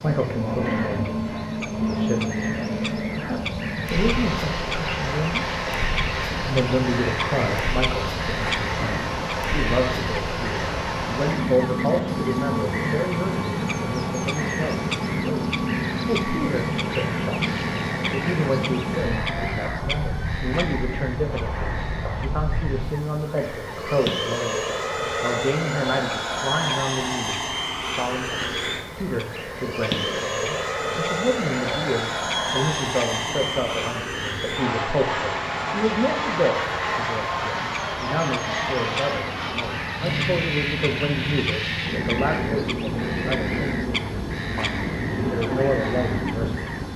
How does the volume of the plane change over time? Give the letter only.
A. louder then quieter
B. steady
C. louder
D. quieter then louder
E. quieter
B.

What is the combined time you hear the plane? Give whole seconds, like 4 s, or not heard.
47 s.